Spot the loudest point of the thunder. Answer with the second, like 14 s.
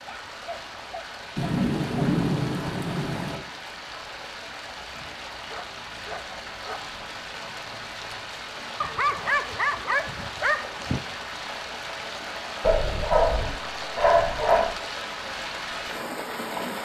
2 s.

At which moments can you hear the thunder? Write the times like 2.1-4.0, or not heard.
1.4-3.4.